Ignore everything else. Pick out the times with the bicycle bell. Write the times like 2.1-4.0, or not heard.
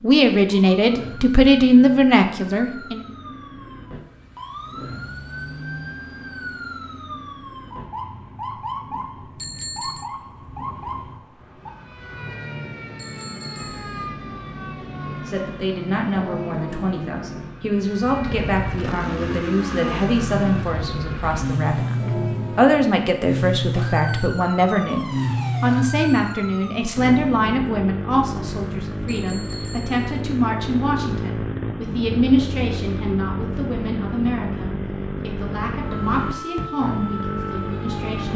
9.3-10.1, 12.9-14.1, 29.1-30.1.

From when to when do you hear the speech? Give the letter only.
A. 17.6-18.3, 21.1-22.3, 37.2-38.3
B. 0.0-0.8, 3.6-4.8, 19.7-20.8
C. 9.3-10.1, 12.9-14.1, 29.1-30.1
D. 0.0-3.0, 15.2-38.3
D.